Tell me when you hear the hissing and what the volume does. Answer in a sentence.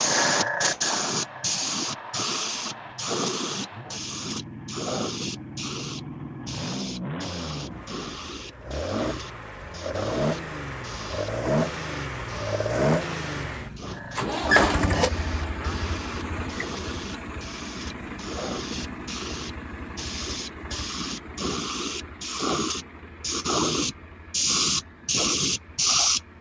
The hissing can be heard from 0.0 to 26.2 s, getting quieter then louder.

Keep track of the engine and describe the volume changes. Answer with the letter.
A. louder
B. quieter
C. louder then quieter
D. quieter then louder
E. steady
C.